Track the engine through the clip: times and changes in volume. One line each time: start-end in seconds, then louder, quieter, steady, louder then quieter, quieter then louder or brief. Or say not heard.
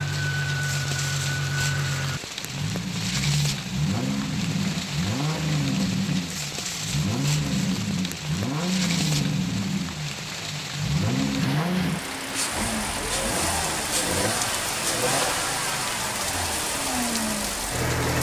0.0-18.1 steady.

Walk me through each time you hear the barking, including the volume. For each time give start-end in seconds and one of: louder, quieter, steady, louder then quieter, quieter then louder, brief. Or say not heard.
not heard.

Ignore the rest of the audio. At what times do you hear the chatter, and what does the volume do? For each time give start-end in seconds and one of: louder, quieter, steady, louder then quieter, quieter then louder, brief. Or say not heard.
not heard.